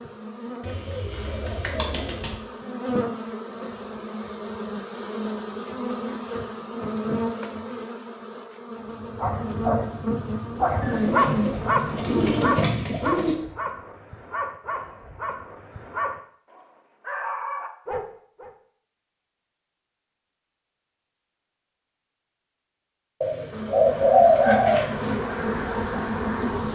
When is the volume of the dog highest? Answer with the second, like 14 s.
11 s.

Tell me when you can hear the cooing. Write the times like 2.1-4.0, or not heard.
0.6-2.4, 10.8-13.3, 23.2-25.2.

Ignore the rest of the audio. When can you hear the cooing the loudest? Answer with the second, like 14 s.
24 s.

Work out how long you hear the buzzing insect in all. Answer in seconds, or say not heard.
16 s.